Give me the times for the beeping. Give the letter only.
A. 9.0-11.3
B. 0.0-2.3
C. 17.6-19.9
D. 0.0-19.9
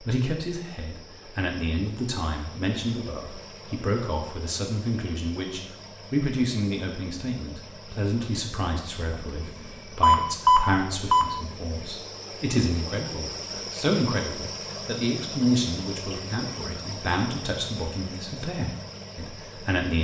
A.